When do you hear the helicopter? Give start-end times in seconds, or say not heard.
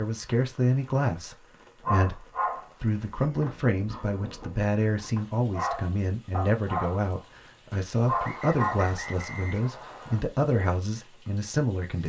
not heard.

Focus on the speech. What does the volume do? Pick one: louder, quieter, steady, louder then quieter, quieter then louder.
steady.